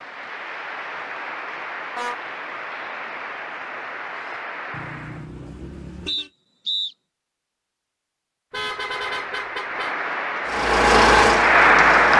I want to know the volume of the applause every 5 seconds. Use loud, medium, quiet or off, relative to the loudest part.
quiet, quiet, loud.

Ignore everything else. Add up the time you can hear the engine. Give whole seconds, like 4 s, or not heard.
2 s.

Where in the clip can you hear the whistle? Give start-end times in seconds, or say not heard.
6.0-7.0.